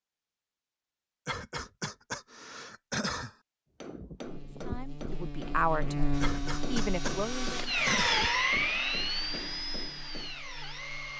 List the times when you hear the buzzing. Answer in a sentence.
You can hear the buzzing from 4.2 to 11.1 s.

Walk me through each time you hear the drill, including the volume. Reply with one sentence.
The drill can be heard from 6.1 to 11.1 s, getting louder then quieter.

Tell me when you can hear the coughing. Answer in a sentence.
The coughing can be heard from 1.2 to 3.4 s and from 6.2 to 8.2 s.